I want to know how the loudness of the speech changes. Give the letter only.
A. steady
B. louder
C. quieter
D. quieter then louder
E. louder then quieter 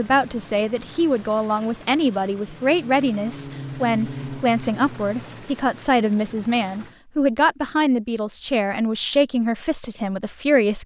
A.